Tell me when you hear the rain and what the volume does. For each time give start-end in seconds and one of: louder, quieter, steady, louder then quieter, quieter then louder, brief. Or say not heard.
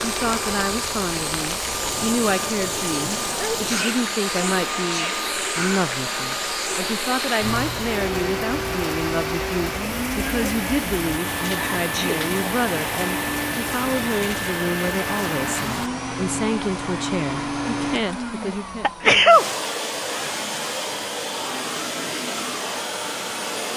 0.0-15.9 steady.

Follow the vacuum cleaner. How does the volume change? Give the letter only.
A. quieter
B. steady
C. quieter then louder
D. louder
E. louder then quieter
B.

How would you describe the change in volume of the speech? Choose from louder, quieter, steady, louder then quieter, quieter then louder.
steady.